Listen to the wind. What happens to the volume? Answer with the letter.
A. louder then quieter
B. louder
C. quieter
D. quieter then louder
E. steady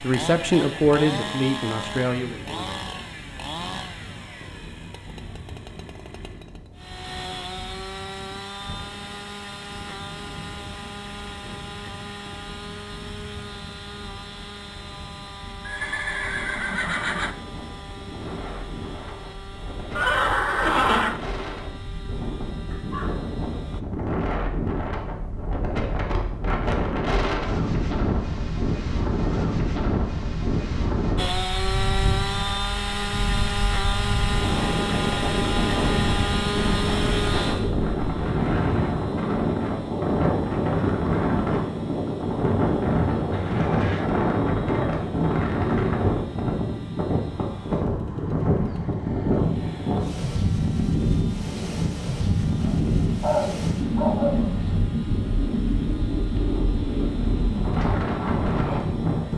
B.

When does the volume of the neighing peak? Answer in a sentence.
The loudest moment of the neighing is at 21 seconds.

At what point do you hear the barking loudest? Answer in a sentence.
The volume of the barking peaks at 53 seconds.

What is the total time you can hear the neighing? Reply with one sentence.
The neighing can be heard for 4 seconds in total.